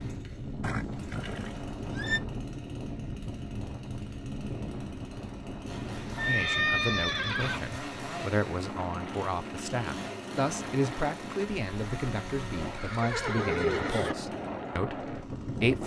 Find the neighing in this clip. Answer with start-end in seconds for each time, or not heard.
0.6-2.2, 6.2-7.8, 12.7-14.2.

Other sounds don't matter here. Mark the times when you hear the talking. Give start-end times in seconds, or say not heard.
6.2-15.8.